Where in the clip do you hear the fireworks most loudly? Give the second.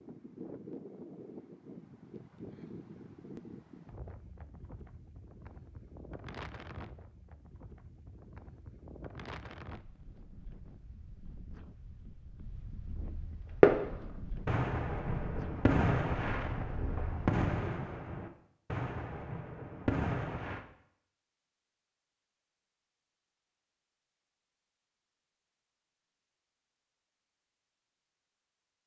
14 s.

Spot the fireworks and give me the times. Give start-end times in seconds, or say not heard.
13.6-20.6.